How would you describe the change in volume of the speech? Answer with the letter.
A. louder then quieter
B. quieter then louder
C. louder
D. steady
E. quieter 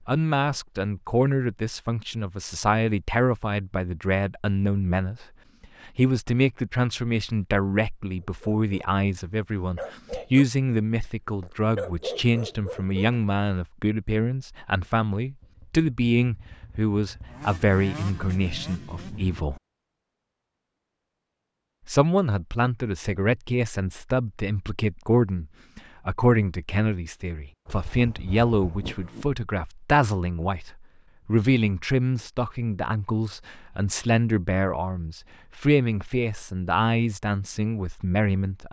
D.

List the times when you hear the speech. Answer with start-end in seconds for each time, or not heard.
0.1-5.2, 5.8-19.6, 21.9-38.6.